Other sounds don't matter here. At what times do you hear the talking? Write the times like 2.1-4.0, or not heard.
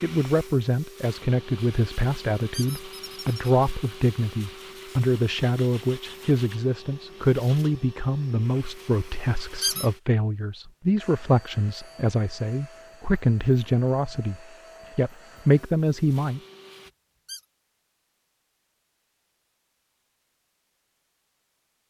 0.0-14.3, 14.9-16.4.